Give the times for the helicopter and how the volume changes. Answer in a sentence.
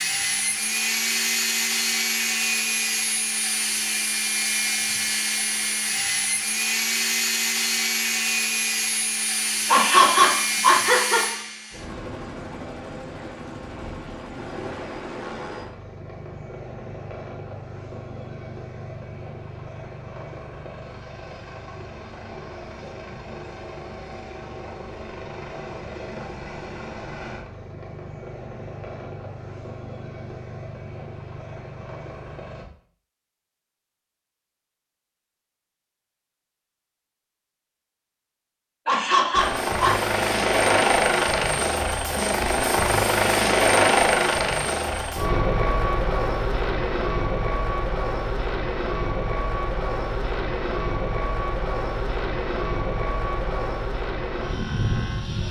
You can hear the helicopter from 0.0 to 32.6 s, getting quieter; and from 39.4 to 55.4 s, getting quieter.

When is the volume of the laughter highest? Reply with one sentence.
The loudest moment of the laughter is at 10 seconds.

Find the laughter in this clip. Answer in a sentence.
You can hear the laughter from 9.7 to 11.4 s and from 38.9 to 40.0 s.